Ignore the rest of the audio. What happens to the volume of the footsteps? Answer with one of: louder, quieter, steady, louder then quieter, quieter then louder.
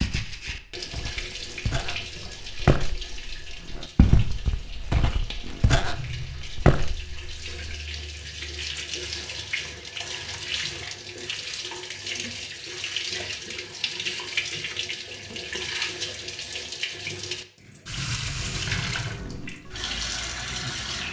louder.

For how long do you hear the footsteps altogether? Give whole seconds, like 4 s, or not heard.
8 s.